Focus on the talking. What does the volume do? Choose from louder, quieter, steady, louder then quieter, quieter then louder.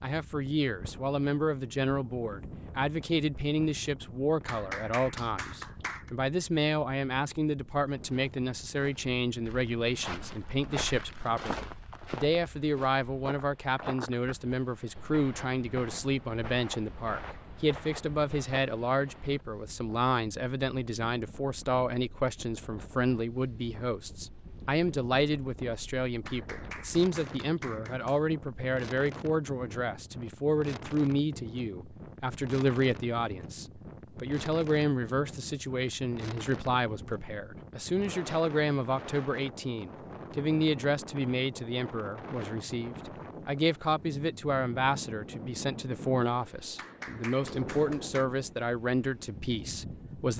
steady.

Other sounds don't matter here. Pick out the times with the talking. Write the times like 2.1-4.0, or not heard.
0.0-50.3.